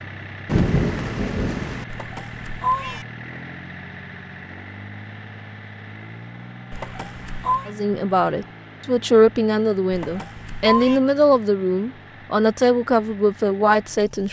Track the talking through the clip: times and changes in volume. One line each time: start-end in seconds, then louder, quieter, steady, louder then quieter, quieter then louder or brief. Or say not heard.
7.7-14.2 steady.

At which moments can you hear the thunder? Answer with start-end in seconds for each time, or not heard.
0.5-1.9.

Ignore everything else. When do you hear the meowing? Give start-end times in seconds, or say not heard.
1.9-3.0, 6.7-7.7, 9.9-11.0.